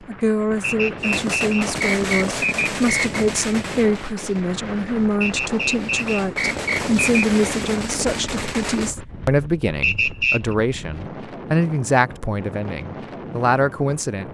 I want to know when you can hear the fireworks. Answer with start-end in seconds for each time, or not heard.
0.9-8.9.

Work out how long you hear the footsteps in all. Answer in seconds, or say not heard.
not heard.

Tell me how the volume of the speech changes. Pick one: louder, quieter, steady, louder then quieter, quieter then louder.
steady.